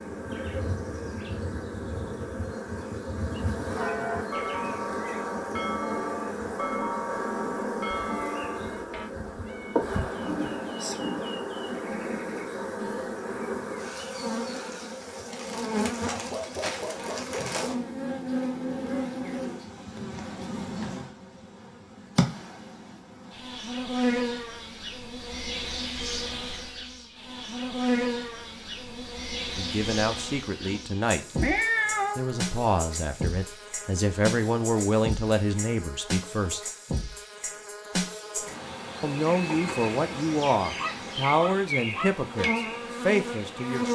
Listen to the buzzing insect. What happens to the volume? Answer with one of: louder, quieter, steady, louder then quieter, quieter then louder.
steady.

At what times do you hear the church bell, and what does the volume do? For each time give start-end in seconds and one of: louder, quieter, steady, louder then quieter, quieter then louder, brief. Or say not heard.
3.6-9.1 steady.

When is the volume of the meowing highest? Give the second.
32 s.